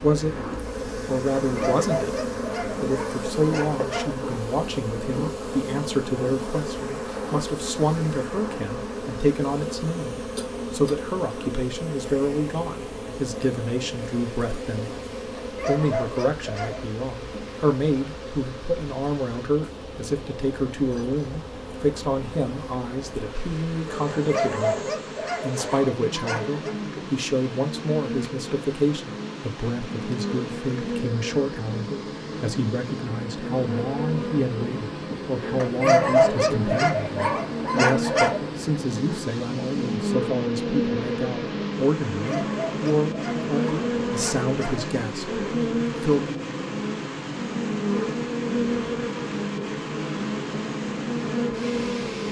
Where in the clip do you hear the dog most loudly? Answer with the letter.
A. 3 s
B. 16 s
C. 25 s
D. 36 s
D.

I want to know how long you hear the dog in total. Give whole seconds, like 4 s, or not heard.
12 s.